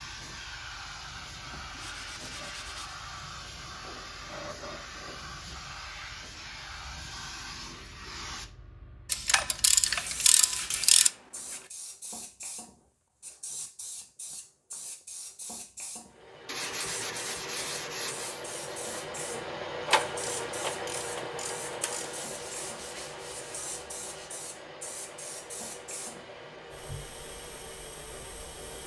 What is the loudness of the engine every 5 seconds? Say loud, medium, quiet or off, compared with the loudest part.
off, off, off, loud, loud, medium.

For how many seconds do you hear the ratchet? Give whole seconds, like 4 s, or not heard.
4 s.